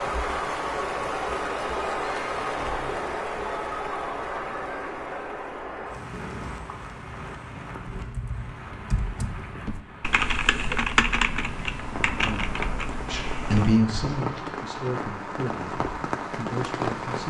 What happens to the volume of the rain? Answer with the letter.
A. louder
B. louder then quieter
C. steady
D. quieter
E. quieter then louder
E.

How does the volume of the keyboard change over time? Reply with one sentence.
The volume of the keyboard goes up, then down.